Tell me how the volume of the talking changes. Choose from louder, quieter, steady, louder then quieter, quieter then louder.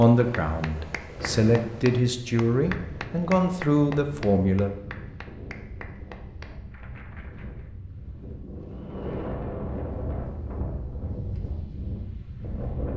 louder.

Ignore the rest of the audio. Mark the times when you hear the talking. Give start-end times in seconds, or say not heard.
0.0-4.7.